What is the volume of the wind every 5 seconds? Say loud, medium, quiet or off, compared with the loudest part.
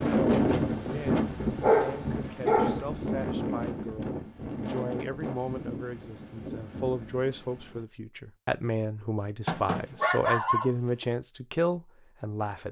loud, medium, off.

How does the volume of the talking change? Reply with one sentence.
The volume of the talking goes up.